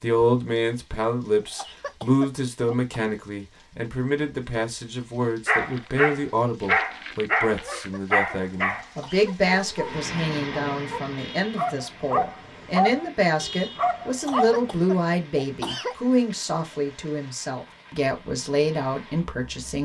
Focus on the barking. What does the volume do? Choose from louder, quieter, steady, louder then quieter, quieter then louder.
quieter then louder.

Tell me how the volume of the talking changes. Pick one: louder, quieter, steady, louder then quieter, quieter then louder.
steady.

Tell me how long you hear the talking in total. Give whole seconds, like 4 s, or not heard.
20 s.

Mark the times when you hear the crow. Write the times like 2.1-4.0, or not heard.
not heard.